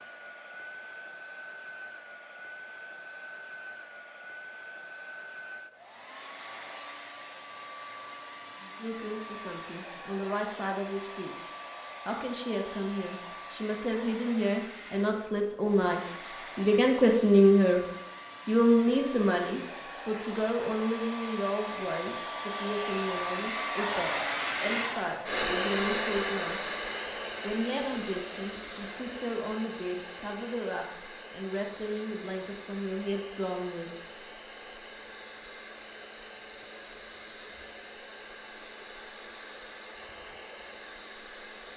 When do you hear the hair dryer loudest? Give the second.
26 s.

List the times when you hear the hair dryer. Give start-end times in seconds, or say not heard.
0.0-41.7.